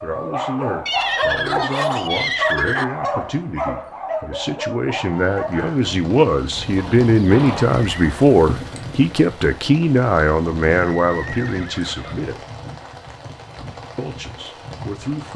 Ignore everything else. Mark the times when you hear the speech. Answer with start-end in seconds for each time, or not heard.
0.0-12.4, 13.9-15.3.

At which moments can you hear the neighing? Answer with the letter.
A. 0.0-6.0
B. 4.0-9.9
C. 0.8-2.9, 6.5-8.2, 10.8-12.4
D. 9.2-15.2
C.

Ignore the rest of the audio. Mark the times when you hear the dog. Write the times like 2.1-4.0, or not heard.
0.0-6.0.